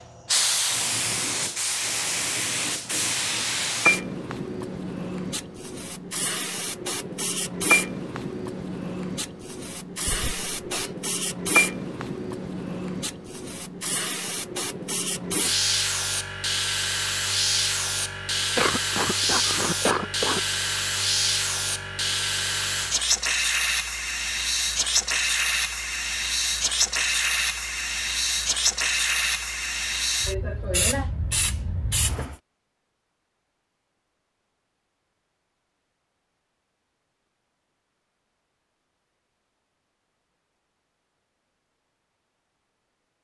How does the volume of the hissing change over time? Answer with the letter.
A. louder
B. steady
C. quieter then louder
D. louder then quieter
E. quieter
B.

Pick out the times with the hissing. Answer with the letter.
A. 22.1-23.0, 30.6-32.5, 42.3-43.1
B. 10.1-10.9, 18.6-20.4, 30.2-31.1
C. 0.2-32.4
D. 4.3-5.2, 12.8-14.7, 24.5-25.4
C.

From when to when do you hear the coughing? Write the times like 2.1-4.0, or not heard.
10.1-10.9, 18.6-20.4, 30.2-31.1.